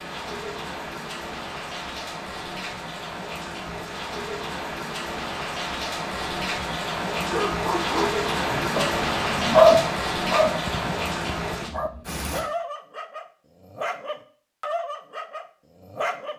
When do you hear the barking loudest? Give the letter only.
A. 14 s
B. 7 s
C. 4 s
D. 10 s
D.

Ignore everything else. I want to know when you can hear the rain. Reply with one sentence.
The rain can be heard from 0.0 to 12.4 s.